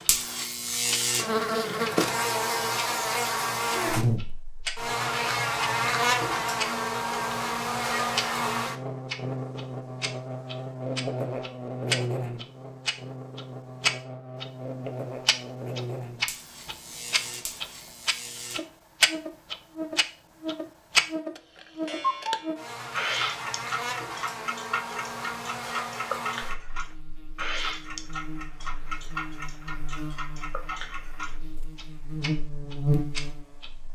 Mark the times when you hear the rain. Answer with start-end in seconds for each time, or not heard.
not heard.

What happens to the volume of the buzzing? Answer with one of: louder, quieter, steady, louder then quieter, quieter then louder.
quieter.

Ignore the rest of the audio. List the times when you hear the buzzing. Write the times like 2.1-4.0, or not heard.
0.0-33.8.